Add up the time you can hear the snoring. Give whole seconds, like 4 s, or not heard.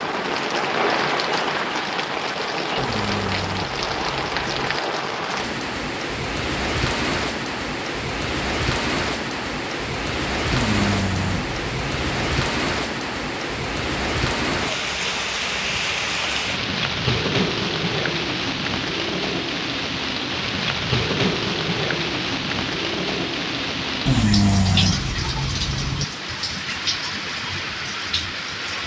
6 s.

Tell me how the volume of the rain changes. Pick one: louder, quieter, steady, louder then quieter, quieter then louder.
steady.